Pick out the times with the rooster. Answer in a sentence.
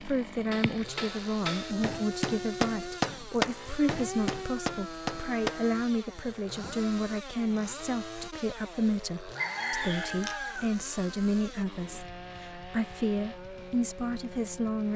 You can hear the rooster from 9.3 to 10.7 s.